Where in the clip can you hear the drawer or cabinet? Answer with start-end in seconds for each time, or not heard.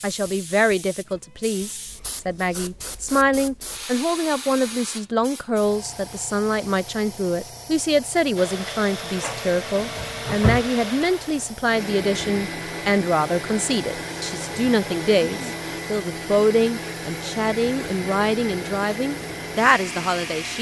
9.2-10.7.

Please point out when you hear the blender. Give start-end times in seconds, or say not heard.
8.3-20.5.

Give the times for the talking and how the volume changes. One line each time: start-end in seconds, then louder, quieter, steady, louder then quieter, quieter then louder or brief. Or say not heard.
0.0-20.5 steady.